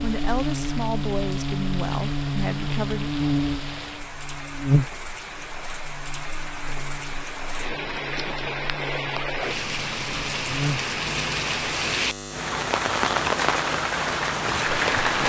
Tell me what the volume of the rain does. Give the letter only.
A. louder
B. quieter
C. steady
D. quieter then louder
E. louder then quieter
A.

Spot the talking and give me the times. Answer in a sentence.
You can hear the talking from 0.0 to 3.1 s.